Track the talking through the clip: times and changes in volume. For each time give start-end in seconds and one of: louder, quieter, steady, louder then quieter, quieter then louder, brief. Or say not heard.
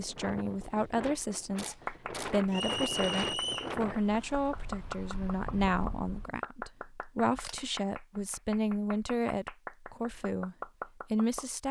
0.0-11.6 steady.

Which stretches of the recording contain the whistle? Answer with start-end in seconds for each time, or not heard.
2.5-3.8.